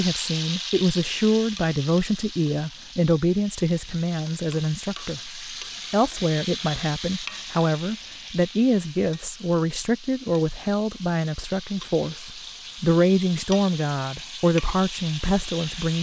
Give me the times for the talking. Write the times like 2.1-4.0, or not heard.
0.0-15.9.